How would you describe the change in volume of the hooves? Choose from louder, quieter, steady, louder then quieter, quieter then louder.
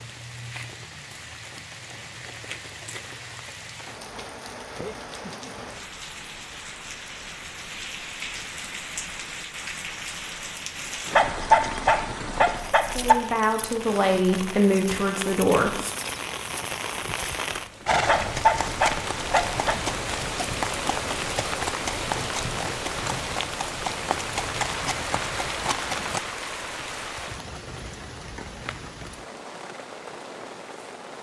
steady.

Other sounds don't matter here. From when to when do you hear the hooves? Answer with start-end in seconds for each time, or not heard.
17.9-26.2.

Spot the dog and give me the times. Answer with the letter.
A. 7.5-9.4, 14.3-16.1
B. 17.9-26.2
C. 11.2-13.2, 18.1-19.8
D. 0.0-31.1
C.